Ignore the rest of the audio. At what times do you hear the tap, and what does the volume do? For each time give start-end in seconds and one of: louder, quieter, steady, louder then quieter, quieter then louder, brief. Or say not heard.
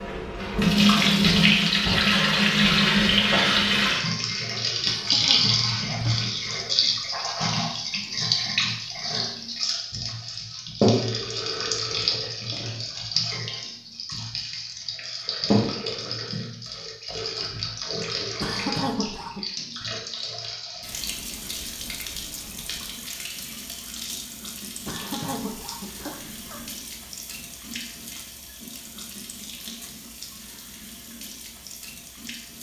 0.0-32.5 quieter.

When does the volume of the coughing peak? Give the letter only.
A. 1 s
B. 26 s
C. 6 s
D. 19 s
D.